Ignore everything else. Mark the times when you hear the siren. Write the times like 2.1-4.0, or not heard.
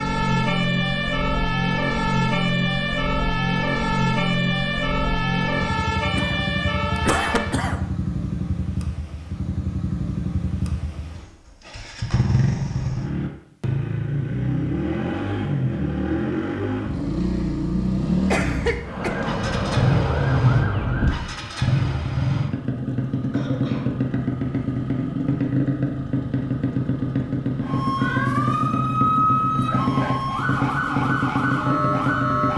0.0-7.6, 18.8-21.4, 27.6-32.5.